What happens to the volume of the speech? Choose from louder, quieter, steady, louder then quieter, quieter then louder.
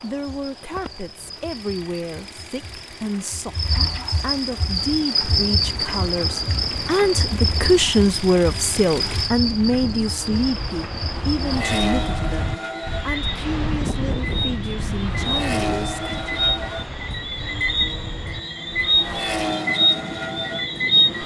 louder then quieter.